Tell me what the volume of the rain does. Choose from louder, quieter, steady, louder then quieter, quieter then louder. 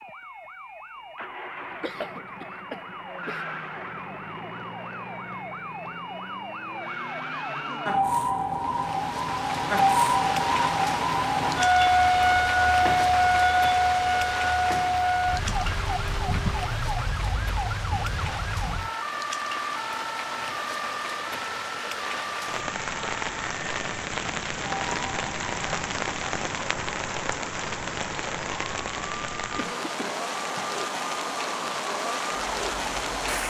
steady.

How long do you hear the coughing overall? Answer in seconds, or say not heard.
3 s.